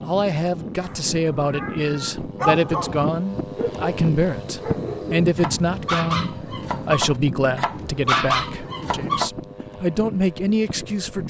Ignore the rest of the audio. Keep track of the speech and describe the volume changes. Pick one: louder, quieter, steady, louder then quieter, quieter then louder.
steady.